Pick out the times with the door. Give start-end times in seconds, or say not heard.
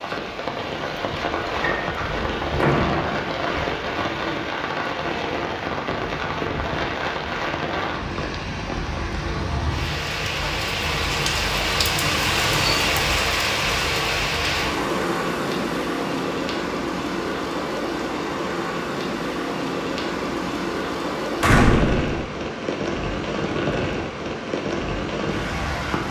2.1-3.2, 21.4-22.2.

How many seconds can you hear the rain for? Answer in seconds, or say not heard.
26 s.